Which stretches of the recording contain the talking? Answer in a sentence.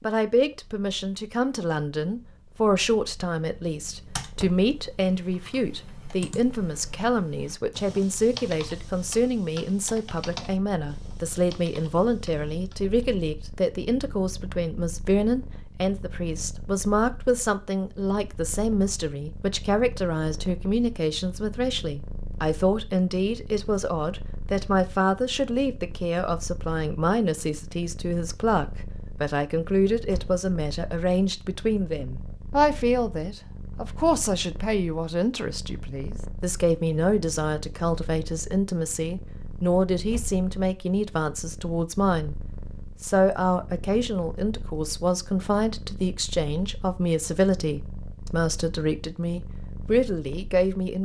You can hear the talking from 0.0 to 42.4 s and from 43.0 to 51.0 s.